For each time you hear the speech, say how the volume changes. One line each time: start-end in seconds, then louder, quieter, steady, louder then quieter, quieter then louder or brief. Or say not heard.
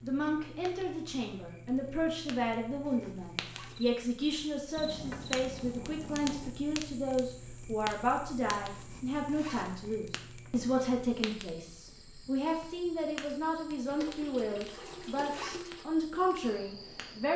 0.0-17.3 steady.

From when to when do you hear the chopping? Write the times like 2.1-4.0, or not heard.
not heard.